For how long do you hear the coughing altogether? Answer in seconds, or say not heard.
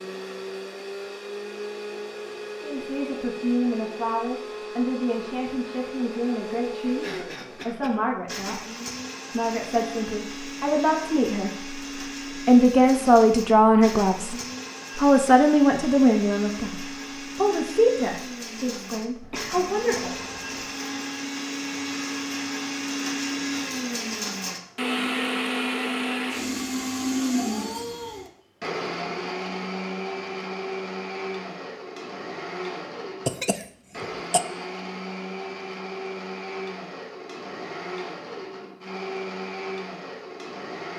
4 s.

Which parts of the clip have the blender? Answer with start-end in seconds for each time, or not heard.
0.0-40.9.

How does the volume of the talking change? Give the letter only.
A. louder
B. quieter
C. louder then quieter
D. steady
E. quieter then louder
C.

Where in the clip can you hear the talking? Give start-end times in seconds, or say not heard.
2.6-8.6, 9.3-14.3, 14.9-20.1.